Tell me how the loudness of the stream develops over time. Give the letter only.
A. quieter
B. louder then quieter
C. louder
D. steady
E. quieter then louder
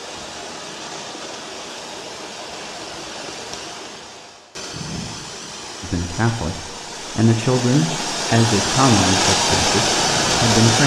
C.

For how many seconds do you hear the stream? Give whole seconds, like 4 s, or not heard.
11 s.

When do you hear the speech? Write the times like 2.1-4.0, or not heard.
5.8-10.8.